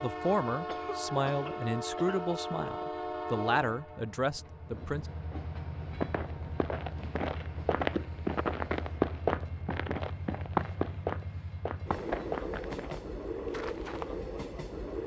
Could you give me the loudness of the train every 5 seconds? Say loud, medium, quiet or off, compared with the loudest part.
loud, medium, loud.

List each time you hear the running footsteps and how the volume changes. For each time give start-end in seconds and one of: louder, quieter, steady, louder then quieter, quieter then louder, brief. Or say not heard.
5.8-14.1 louder then quieter.